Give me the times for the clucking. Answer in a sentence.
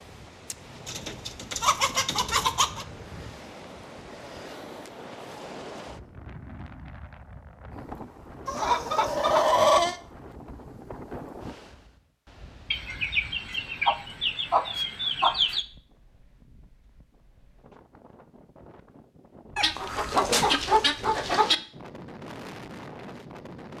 You can hear the clucking from 0.8 to 2.9 s, from 8.4 to 10.0 s, from 12.7 to 15.7 s and from 19.6 to 21.6 s.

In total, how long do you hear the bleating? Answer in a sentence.
The bleating can't be heard in this clip.